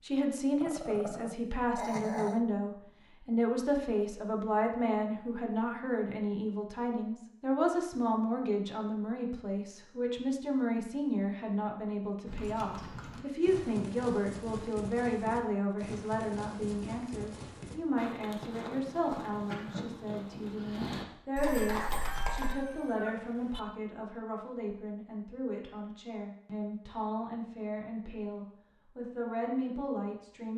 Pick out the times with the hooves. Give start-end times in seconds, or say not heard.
12.2-22.6.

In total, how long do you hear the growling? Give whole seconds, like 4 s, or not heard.
2 s.